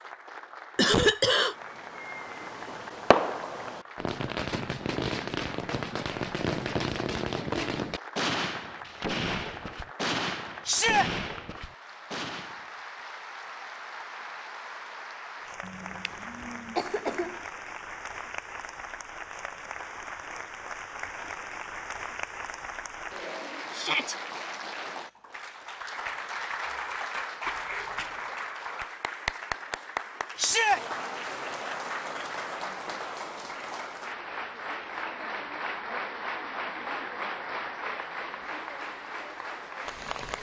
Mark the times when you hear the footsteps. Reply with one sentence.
The footsteps can't be heard in this clip.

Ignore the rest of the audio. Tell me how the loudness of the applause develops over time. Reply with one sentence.
The loudness of the applause goes up.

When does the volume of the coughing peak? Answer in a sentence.
The volume of the coughing peaks at 1 second.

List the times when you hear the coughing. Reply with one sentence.
You can hear the coughing from 0.8 to 1.6 s, from 15.6 to 17.4 s and from 27.4 to 28.1 s.